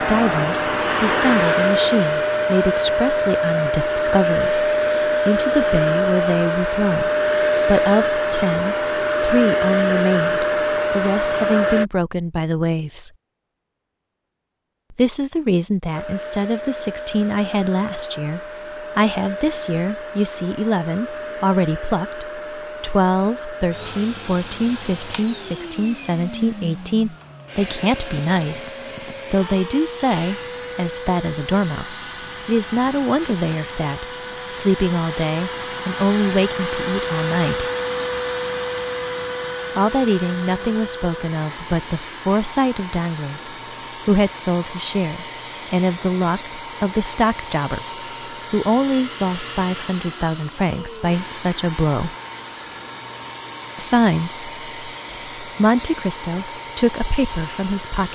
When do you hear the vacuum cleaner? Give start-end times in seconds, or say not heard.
0.0-11.8, 15.9-58.1.